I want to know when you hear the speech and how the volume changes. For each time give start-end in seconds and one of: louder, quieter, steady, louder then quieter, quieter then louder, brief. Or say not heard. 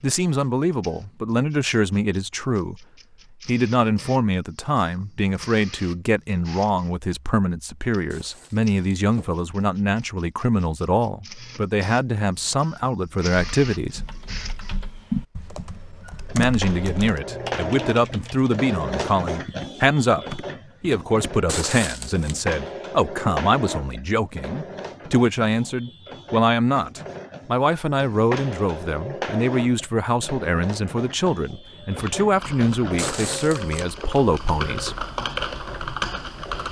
0.0-2.9 brief
3.5-14.0 steady
16.4-35.0 steady.